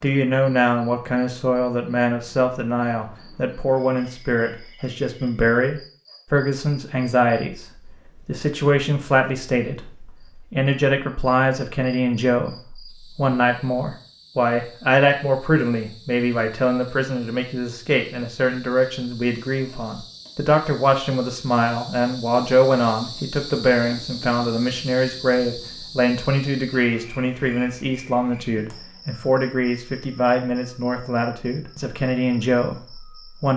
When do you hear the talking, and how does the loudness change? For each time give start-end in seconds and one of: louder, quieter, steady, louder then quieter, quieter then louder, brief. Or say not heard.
0.0-33.5 steady.